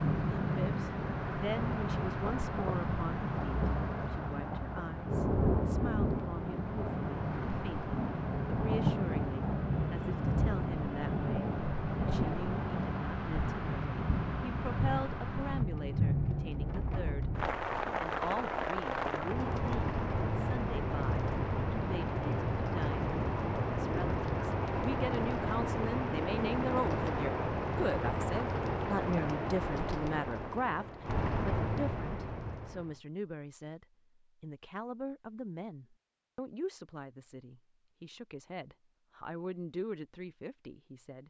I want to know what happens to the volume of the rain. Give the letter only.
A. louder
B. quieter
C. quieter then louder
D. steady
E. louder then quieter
D.